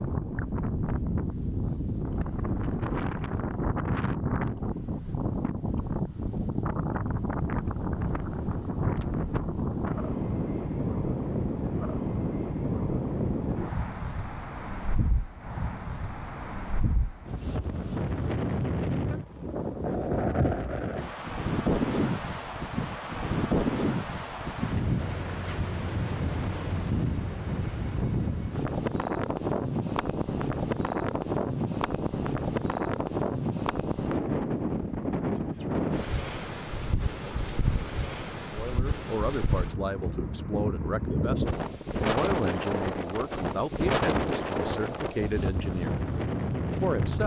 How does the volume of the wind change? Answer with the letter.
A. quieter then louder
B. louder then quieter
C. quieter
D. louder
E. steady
E.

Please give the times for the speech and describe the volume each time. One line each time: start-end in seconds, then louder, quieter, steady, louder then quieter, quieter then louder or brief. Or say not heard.
38.5-46.0 steady
46.7-47.2 brief.